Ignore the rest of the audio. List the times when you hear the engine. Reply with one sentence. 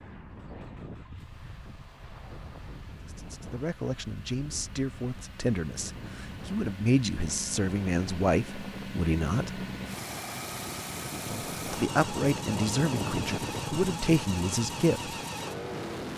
You can hear the engine from 0.2 to 16.1 s.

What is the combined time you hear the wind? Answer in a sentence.
You can hear the wind for 16 seconds altogether.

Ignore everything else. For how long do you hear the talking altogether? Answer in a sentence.
The talking can be heard for 11 seconds in total.